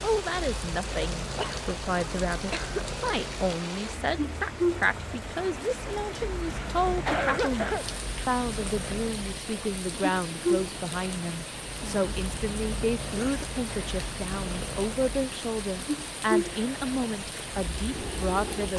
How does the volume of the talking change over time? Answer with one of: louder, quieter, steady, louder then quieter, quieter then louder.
steady.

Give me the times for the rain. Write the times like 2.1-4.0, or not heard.
0.0-18.7.